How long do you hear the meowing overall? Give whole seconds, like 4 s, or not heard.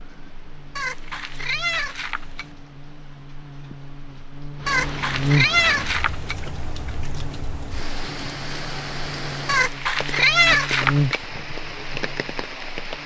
5 s.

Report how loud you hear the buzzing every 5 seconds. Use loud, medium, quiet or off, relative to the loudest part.
quiet, loud, loud.